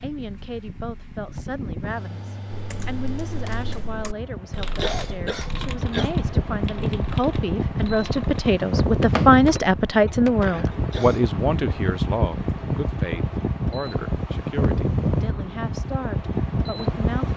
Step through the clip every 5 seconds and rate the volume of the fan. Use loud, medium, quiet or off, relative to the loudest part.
medium, loud, loud, loud.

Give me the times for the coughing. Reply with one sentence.
You can hear the coughing from 4.6 to 6.1 s and from 10.7 to 11.3 s.